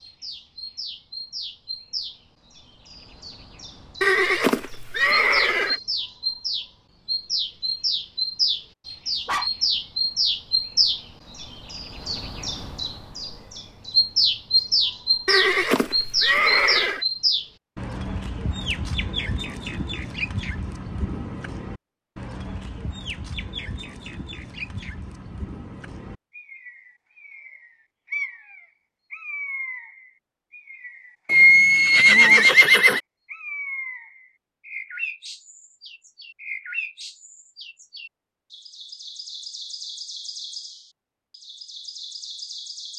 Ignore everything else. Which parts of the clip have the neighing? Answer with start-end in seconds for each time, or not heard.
4.0-5.8, 15.2-17.1, 31.2-33.0.